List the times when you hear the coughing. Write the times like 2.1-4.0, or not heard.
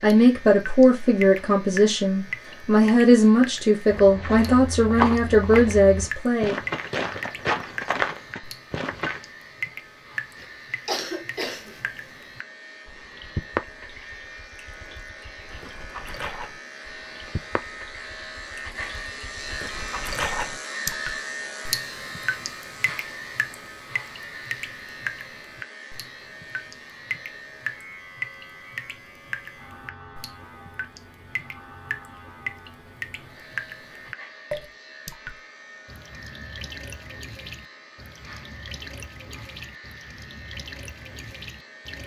10.3-11.8.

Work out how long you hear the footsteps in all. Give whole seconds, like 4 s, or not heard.
5 s.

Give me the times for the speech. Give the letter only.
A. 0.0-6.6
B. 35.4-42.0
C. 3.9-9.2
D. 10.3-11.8
A.